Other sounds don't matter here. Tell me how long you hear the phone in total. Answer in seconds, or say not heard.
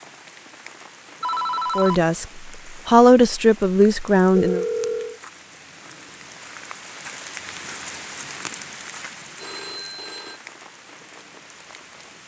3 s.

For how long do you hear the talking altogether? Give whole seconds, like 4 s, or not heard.
3 s.